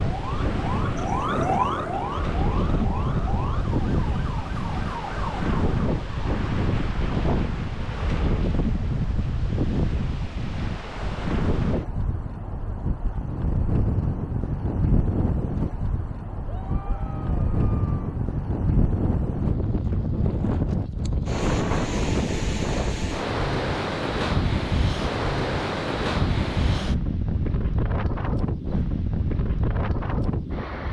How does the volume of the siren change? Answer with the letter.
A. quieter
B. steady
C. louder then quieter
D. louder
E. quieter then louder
A.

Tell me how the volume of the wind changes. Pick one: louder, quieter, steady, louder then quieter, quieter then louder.
steady.